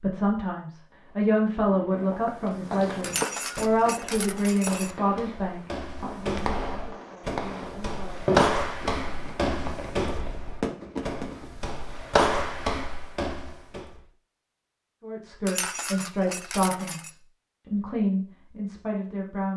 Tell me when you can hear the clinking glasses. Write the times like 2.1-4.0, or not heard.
3.0-5.0, 15.4-17.1.